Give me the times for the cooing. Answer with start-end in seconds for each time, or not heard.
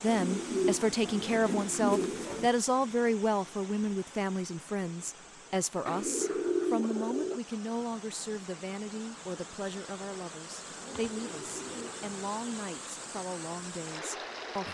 0.1-2.5, 5.8-7.4, 10.8-12.2.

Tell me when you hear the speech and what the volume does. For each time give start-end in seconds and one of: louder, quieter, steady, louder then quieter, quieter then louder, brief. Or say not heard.
0.0-14.6 quieter.